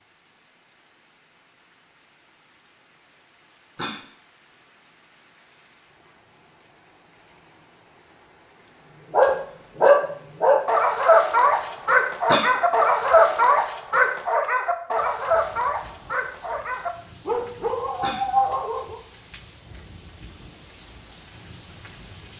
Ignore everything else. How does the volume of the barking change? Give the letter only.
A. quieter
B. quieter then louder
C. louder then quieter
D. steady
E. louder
A.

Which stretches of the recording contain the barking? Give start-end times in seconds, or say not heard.
9.1-19.0.